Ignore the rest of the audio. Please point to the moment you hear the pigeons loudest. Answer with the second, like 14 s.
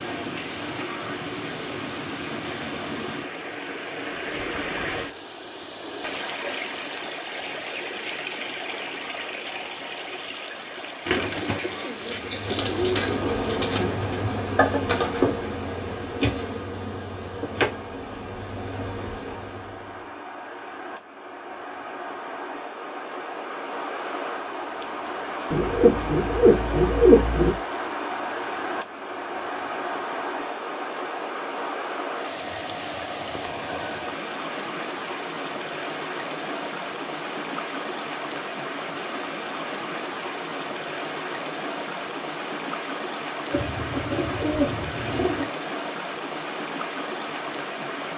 27 s.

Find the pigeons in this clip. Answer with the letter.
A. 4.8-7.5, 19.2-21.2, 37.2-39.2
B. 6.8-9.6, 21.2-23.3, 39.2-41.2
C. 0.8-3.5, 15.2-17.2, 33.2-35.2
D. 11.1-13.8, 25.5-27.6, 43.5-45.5
D.